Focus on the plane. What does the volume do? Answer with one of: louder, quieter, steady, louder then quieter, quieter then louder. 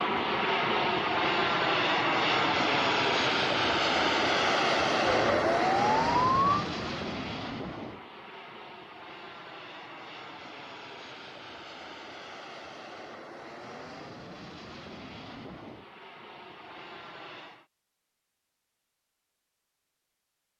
quieter.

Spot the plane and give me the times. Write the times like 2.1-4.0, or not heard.
0.0-17.6.